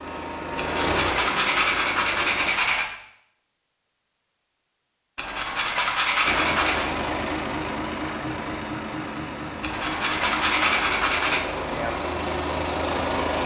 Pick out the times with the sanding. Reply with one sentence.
You can hear the sanding from 0.6 to 2.9 s, from 5.2 to 6.9 s and from 9.6 to 11.4 s.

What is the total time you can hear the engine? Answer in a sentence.
The engine can be heard for 10 seconds in total.